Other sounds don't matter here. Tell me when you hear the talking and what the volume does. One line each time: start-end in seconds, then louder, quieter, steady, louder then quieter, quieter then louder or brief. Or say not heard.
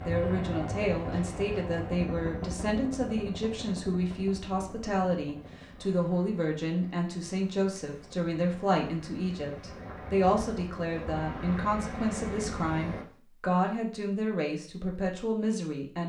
0.0-16.0 steady.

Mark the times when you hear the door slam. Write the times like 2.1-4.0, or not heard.
not heard.